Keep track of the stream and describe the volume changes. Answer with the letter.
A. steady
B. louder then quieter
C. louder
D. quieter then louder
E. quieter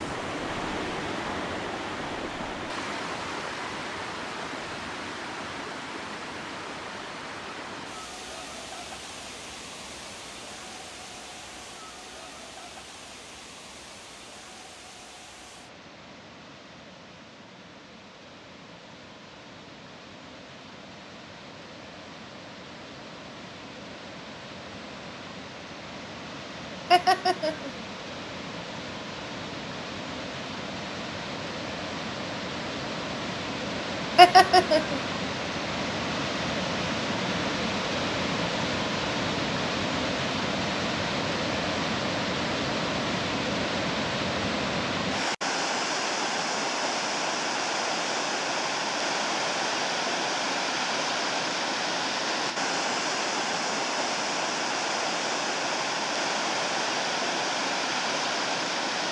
D.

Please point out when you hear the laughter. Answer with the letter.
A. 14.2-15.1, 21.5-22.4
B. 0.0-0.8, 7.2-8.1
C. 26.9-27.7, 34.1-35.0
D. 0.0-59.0
C.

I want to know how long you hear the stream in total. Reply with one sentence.
The stream can be heard for 59 seconds in total.